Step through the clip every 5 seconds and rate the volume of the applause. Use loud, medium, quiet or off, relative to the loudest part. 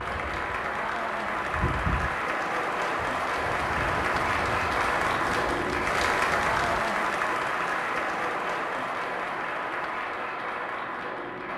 loud, loud, medium.